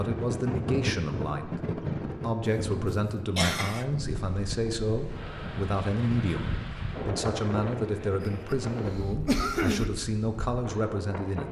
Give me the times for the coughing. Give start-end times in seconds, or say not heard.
2.5-3.9, 8.2-9.9.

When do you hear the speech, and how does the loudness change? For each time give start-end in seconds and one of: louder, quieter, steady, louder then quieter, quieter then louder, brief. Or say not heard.
0.0-11.4 steady.